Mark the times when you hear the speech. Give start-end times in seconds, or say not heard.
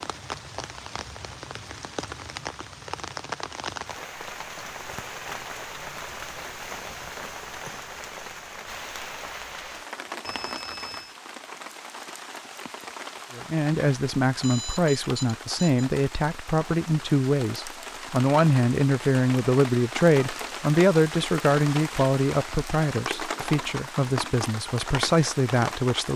13.3-26.1.